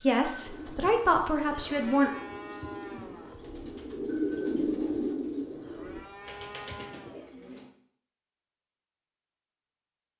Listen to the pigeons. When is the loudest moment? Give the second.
4 s.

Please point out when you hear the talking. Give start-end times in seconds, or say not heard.
0.0-2.1.